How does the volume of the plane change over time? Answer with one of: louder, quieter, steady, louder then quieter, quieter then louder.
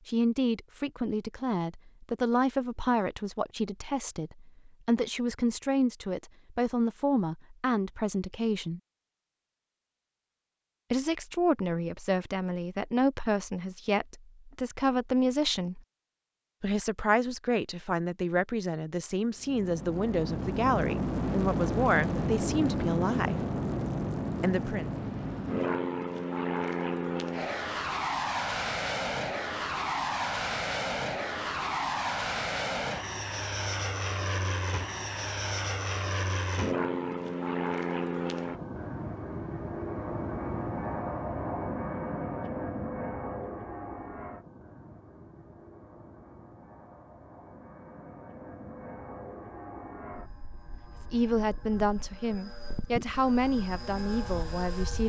quieter.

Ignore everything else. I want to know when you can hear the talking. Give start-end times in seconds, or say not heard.
0.1-8.8, 10.9-15.8, 16.6-23.4, 24.4-24.9, 51.0-55.0.